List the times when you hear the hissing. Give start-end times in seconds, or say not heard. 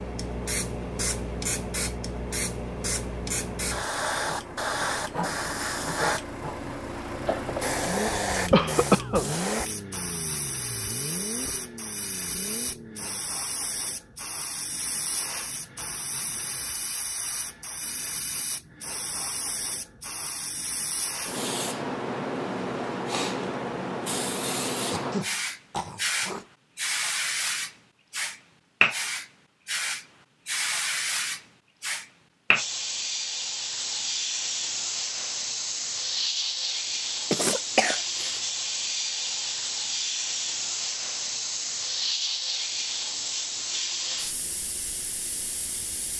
0.0-46.1.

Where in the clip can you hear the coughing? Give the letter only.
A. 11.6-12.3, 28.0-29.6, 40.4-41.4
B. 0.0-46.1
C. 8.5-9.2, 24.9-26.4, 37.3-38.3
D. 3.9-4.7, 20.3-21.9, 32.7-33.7
C.